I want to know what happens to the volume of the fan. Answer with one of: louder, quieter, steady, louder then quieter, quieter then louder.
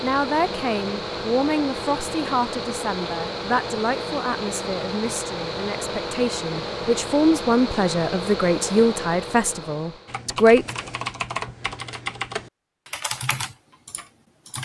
steady.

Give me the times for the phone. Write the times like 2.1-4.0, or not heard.
not heard.